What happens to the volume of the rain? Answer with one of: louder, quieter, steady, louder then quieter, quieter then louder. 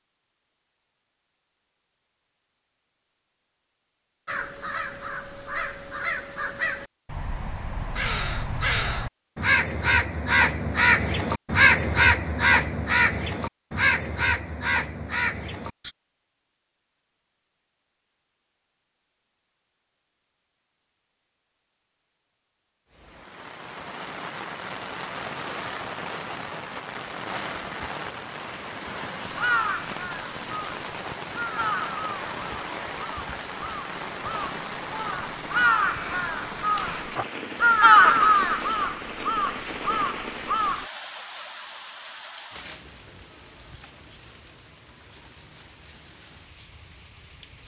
quieter.